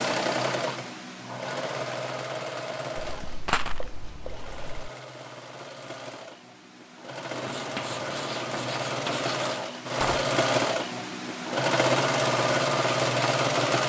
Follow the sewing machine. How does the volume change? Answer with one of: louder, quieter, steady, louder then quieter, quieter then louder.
quieter then louder.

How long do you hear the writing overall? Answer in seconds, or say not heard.
4 s.